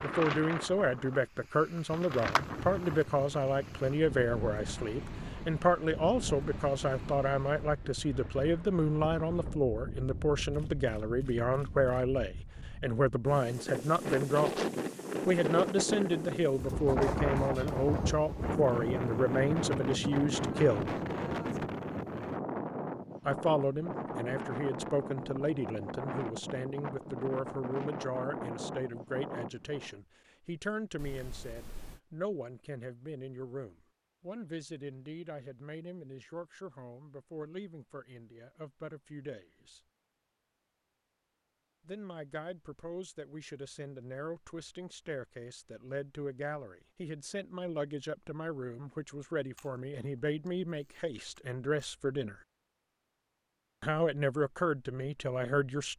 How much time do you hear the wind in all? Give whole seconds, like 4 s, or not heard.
30 s.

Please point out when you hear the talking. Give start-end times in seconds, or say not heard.
0.0-14.5, 15.2-20.9, 23.2-39.8, 41.9-52.4, 53.8-55.9.